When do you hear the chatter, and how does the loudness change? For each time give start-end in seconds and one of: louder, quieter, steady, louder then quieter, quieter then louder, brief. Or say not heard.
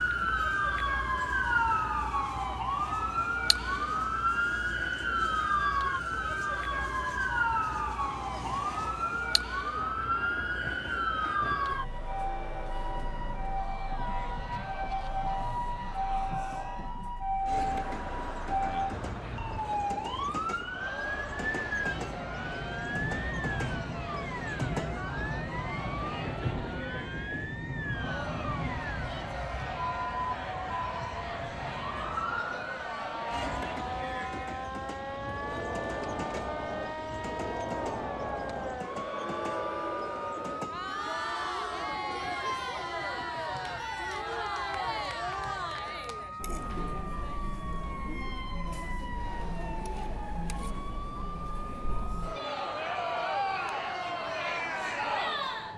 0.1-55.7 louder.